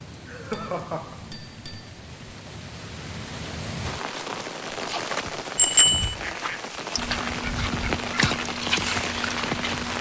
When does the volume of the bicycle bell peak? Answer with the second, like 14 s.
6 s.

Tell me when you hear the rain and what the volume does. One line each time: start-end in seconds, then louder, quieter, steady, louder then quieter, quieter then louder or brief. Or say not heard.
0.0-9.9 louder.